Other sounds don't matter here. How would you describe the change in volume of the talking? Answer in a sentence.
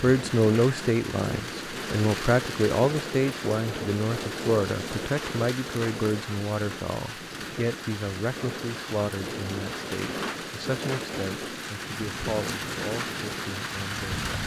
The volume of the talking goes down.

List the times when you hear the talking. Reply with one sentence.
The talking can be heard from 0.0 to 14.2 s.